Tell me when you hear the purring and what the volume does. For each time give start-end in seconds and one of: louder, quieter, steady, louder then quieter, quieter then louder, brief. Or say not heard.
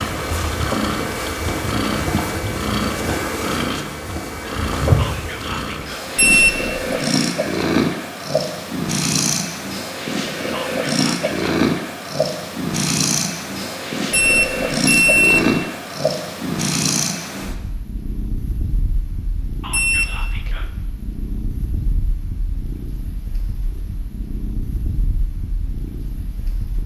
0.0-26.8 quieter.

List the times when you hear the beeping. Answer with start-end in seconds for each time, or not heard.
6.2-6.8, 14.1-15.6, 19.7-20.2.